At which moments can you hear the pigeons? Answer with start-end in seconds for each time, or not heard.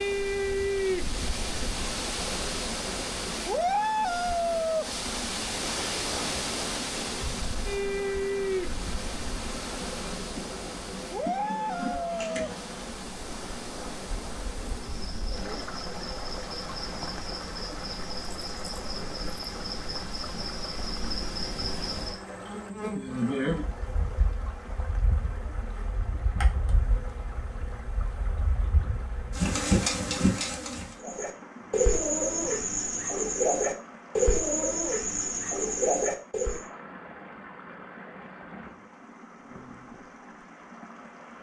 31.0-36.6.